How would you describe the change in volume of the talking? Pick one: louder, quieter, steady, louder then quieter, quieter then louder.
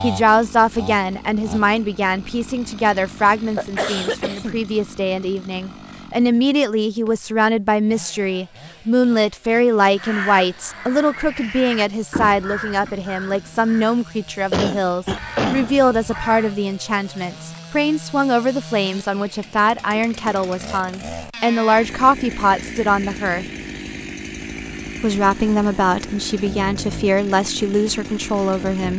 steady.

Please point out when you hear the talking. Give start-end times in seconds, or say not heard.
0.0-23.4, 25.0-28.9.